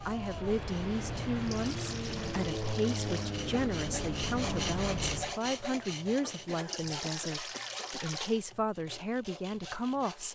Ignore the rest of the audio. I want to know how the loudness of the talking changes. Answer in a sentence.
The volume of the talking stays about the same.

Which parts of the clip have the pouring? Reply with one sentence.
You can hear the pouring from 1.4 to 3.4 s and from 6.7 to 8.3 s.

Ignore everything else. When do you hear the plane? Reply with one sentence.
The plane can be heard from 0.0 to 5.4 s.